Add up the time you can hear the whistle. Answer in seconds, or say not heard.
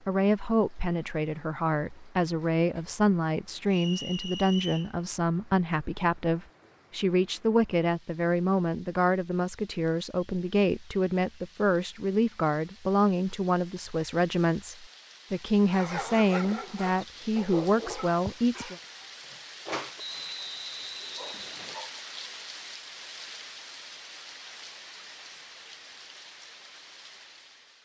3 s.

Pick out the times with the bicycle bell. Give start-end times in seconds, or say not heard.
not heard.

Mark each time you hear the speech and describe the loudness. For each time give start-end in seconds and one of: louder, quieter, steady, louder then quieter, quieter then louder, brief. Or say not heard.
0.1-18.8 steady.